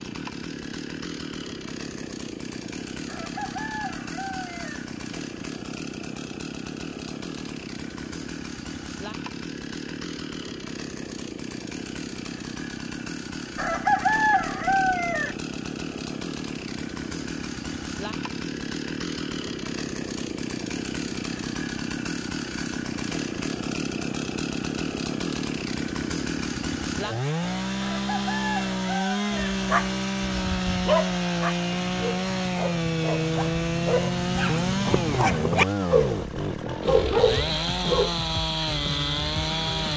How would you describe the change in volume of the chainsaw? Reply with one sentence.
The volume of the chainsaw goes up.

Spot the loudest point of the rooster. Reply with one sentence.
The volume of the rooster peaks at 14 seconds.